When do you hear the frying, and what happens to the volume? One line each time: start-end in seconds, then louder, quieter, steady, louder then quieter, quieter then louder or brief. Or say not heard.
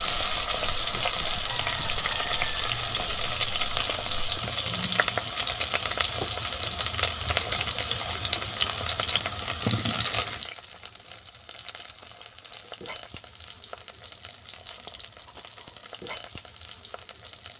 0.0-17.5 quieter.